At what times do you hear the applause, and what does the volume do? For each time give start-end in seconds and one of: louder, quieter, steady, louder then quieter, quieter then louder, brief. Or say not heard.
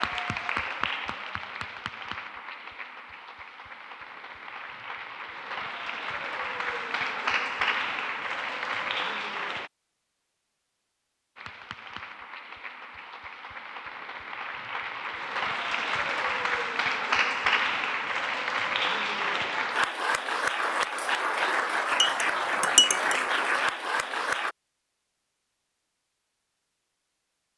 0.0-9.7 quieter then louder
11.3-24.6 louder.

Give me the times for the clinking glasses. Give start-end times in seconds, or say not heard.
22.0-23.2.